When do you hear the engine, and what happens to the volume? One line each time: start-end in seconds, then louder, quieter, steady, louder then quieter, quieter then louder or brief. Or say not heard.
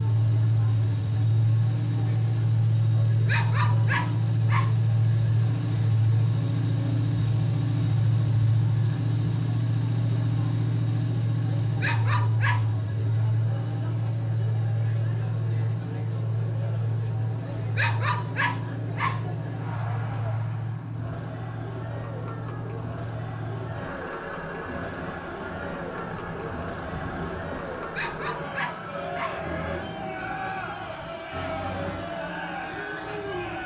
0.0-33.6 quieter.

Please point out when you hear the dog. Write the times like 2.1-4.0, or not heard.
3.1-4.8, 11.6-12.7, 17.4-19.2, 27.8-29.4.